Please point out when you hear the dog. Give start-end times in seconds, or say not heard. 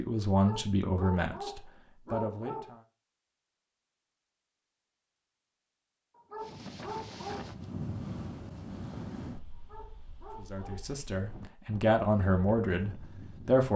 0.3-2.8, 6.2-7.5, 9.6-10.9.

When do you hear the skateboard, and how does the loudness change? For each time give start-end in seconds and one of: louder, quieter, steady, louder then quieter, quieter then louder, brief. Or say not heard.
not heard.